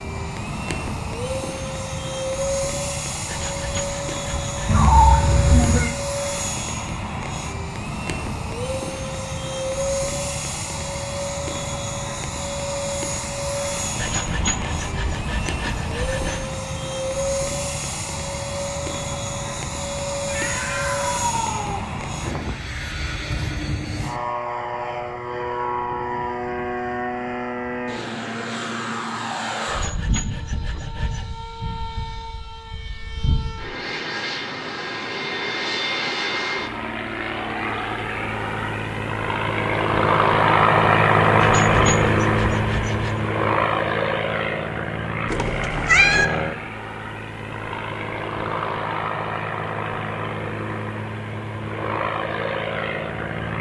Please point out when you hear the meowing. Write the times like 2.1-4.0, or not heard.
4.7-5.9, 20.2-21.8, 45.2-46.2.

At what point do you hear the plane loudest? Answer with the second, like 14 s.
41 s.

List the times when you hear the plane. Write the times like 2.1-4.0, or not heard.
0.0-53.5.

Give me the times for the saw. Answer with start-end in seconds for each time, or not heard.
3.2-4.8, 13.9-16.4, 29.6-31.3, 41.4-43.1.